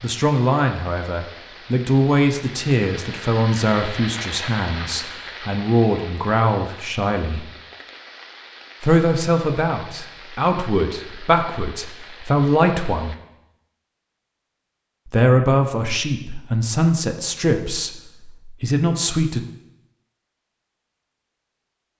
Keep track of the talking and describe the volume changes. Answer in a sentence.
The volume of the talking stays about the same.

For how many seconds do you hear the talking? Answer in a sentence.
You can hear the talking for 16 seconds altogether.